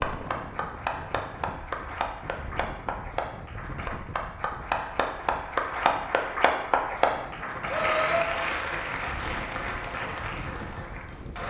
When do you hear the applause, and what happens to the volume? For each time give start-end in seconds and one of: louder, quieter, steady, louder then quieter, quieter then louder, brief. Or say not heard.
0.0-11.4 louder then quieter.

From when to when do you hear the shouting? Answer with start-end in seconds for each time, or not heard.
7.7-8.3.